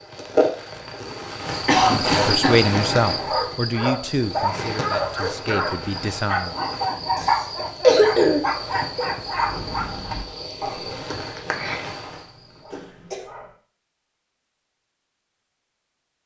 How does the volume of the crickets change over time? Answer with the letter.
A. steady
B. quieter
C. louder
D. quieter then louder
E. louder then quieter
B.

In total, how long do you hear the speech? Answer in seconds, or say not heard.
5 s.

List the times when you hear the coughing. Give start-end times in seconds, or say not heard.
1.6-3.5, 7.2-9.1, 12.7-13.3.